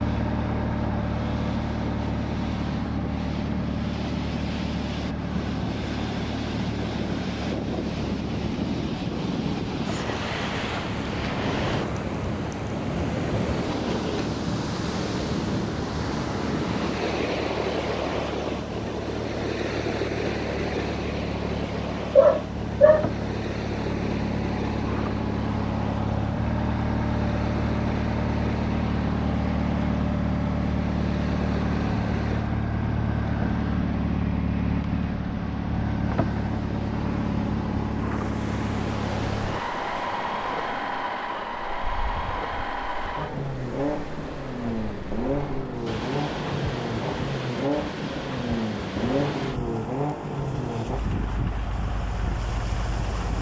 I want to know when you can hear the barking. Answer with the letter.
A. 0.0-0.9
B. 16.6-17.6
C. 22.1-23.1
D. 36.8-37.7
C.